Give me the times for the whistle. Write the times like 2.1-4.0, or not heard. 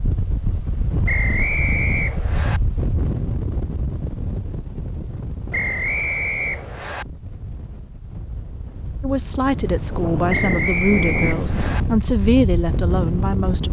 1.1-2.6, 5.5-7.0, 10.2-11.8.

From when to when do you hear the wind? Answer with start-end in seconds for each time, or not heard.
0.0-13.6.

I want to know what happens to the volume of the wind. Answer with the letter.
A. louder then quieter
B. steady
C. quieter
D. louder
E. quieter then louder
E.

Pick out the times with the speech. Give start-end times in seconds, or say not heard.
9.0-13.6.